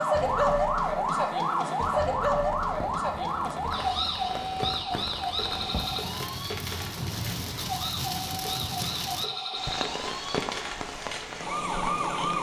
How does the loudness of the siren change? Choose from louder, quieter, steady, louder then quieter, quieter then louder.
quieter.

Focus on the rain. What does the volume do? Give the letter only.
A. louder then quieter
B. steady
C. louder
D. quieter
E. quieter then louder
C.